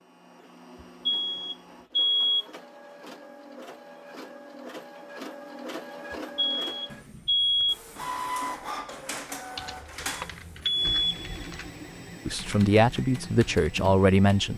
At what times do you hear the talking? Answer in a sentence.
You can hear the talking from 12.2 to 14.5 s.